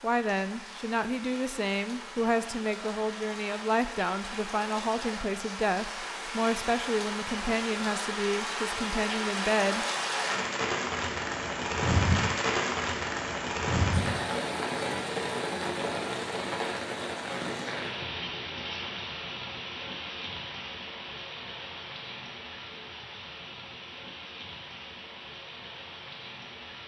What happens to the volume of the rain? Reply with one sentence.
The loudness of the rain goes up, then down.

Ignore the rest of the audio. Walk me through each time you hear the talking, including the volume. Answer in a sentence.
You can hear the talking from 0.0 to 9.8 s, at a steady volume.